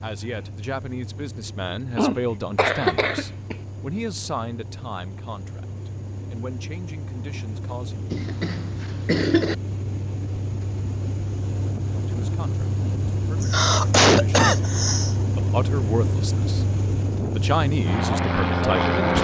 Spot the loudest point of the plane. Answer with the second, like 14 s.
19 s.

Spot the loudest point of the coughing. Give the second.
14 s.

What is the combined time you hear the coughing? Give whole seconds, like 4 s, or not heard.
5 s.